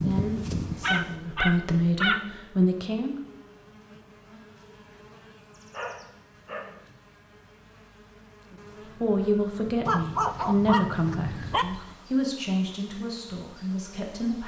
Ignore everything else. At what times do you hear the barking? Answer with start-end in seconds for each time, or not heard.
0.8-2.2, 5.7-7.0, 9.8-11.7.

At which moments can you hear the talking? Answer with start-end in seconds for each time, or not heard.
0.0-3.1, 9.0-14.4.